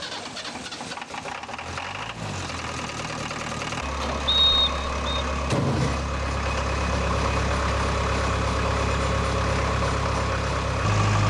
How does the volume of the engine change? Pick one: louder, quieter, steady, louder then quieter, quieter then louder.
louder.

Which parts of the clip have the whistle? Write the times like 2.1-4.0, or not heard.
4.2-5.2.